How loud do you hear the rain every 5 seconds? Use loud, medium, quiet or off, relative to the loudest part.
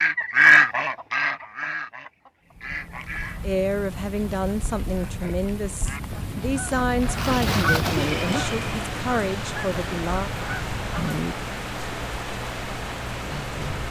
medium, loud, loud.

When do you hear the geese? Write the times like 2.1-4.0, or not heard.
0.0-3.5, 5.0-11.3.